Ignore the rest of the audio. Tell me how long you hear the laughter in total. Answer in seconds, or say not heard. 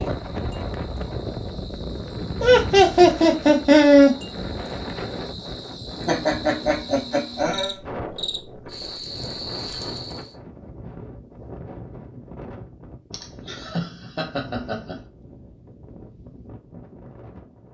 5 s.